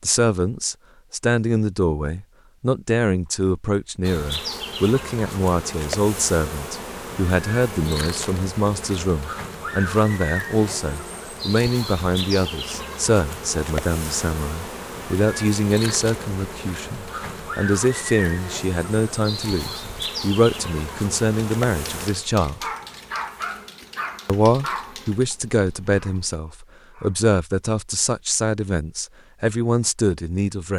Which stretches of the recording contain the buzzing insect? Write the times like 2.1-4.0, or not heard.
4.0-26.4.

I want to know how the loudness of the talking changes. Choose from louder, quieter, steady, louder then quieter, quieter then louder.
steady.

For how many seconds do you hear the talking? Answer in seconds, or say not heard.
29 s.